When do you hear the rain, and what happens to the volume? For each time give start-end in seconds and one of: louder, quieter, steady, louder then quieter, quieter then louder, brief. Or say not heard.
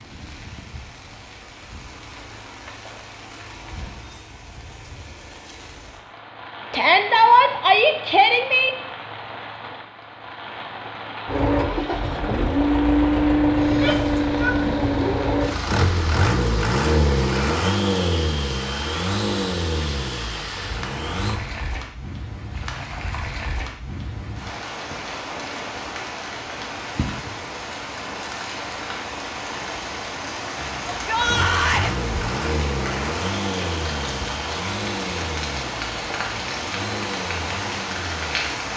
0.0-38.7 louder.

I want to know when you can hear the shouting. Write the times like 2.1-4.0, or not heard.
6.7-8.7, 13.7-14.6, 30.9-31.9.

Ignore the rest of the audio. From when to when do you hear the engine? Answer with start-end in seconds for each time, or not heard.
11.2-21.4, 30.6-38.5.